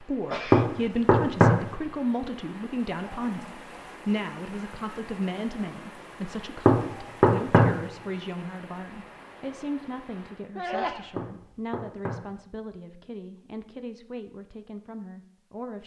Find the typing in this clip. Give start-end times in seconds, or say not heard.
not heard.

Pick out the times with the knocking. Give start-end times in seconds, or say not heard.
0.5-1.6, 6.7-7.8, 11.2-12.3.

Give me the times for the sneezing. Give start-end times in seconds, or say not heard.
0.3-0.8, 10.6-11.3.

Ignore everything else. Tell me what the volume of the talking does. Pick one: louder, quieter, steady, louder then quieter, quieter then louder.
quieter.